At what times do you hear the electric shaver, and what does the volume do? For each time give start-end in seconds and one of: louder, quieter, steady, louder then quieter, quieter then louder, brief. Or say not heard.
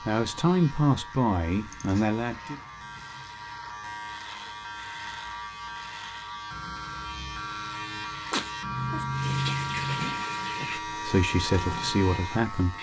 0.0-12.7 louder.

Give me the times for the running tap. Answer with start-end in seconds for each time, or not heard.
9.1-12.7.